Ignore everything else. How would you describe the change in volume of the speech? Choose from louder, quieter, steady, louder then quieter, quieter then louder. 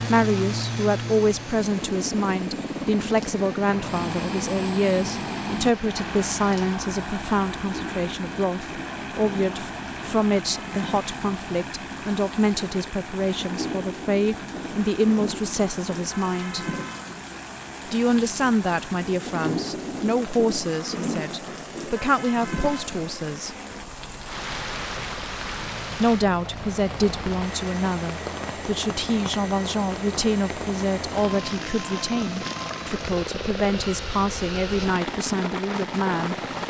steady.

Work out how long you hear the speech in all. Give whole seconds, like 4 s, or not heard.
33 s.